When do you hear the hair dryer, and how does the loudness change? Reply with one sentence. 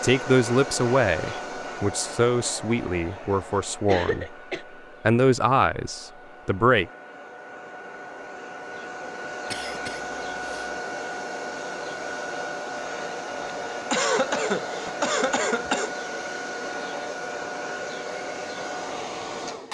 You can hear the hair dryer from 0.0 to 19.6 s, getting quieter then louder.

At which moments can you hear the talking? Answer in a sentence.
The talking can be heard from 0.0 to 4.3 s and from 5.0 to 6.8 s.